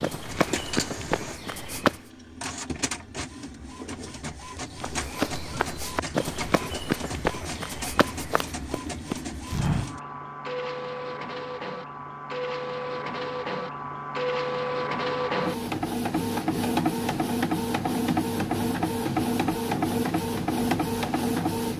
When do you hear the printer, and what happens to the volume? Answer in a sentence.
The printer can be heard from 0.1 to 21.7 s, getting louder.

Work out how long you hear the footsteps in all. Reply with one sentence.
The footsteps can be heard for 7 seconds in total.